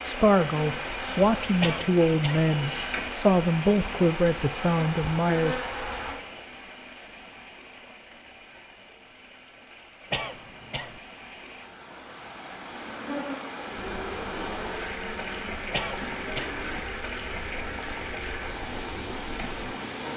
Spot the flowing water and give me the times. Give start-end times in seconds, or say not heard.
0.0-20.1.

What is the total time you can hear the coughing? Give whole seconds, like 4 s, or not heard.
3 s.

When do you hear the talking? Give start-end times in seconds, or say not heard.
0.0-5.5.